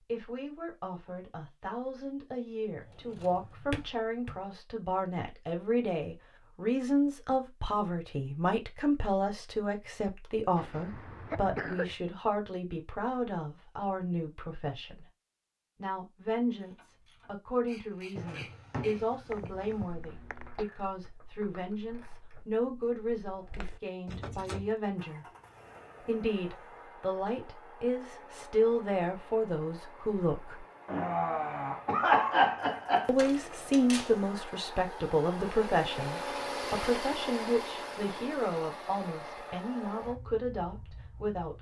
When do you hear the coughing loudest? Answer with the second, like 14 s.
32 s.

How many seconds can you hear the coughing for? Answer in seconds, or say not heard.
5 s.